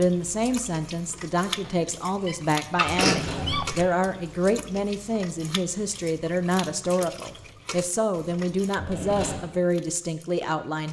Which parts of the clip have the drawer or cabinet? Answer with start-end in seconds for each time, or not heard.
2.8-3.9, 8.8-9.4.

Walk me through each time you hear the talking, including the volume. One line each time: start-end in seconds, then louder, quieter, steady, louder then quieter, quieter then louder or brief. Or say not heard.
0.0-10.8 steady.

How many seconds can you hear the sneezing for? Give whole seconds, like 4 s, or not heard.
2 s.